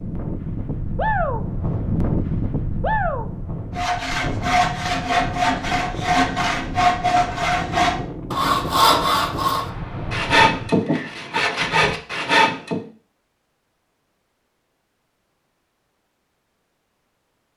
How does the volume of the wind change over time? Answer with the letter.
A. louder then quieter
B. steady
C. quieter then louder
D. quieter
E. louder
D.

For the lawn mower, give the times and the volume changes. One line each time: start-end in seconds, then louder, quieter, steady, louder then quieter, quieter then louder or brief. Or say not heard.
not heard.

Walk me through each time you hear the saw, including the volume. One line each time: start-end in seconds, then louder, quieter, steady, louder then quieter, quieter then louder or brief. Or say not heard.
3.7-12.8 steady.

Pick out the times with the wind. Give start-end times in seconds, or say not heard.
0.0-10.8.